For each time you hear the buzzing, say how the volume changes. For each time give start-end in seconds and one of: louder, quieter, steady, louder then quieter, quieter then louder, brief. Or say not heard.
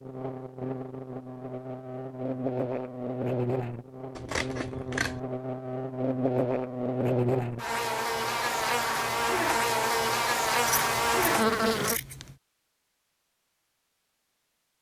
0.0-12.0 louder.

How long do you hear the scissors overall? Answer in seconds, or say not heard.
3 s.